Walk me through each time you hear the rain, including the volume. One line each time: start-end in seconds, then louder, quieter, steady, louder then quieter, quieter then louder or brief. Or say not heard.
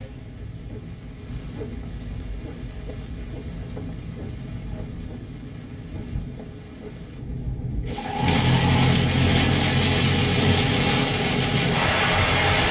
0.0-12.6 louder.